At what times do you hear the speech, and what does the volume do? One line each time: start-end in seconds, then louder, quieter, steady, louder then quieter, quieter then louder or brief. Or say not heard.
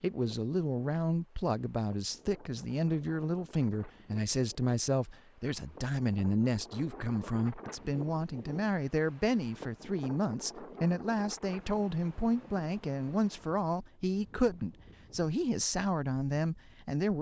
0.0-17.1 steady.